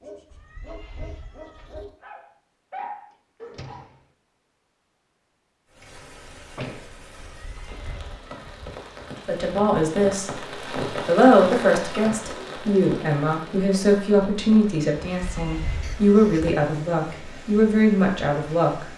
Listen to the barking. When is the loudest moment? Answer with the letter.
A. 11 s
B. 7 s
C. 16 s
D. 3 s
D.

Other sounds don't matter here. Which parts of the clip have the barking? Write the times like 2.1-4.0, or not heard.
0.0-3.9.